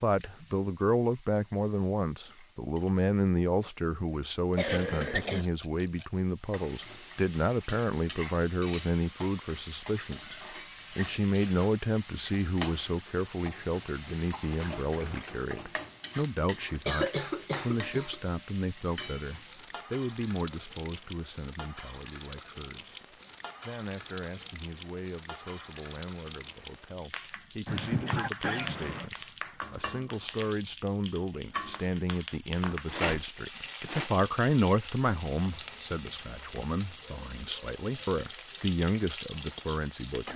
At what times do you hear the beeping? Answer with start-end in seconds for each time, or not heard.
not heard.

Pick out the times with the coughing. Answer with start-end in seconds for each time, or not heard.
4.5-5.5, 16.8-18.1, 27.6-29.1.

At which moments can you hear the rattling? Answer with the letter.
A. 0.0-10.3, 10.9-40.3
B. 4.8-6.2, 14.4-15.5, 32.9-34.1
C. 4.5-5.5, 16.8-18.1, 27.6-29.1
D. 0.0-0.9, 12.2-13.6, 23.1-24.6
B.